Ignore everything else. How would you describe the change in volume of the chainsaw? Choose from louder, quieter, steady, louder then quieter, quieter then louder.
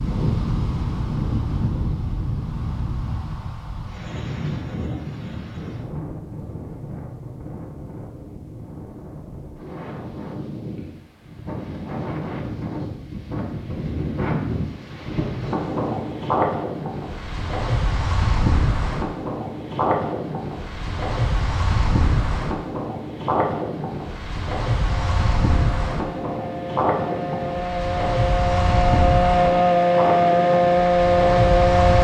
louder.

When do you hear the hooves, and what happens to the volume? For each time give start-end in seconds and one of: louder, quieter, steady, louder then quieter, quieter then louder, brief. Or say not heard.
not heard.